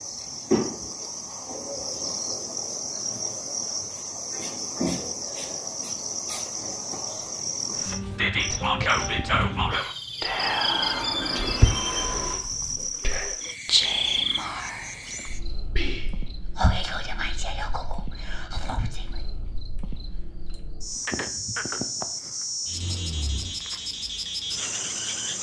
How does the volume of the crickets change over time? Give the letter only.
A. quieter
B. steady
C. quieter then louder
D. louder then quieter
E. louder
C.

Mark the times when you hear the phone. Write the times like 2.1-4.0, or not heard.
10.3-12.4.